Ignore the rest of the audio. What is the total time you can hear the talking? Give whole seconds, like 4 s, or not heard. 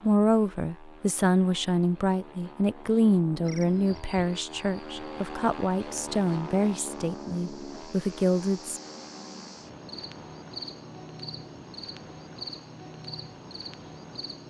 9 s.